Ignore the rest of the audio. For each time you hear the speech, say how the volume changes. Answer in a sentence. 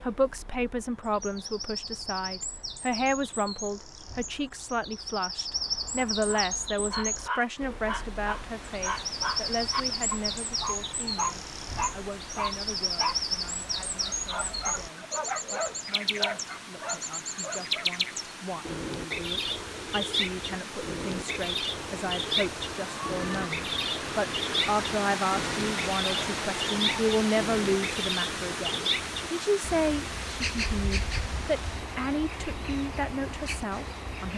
You can hear the speech from 0.0 to 34.3 s, getting quieter then louder.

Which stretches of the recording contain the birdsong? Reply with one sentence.
The birdsong can be heard from 0.0 to 34.3 s.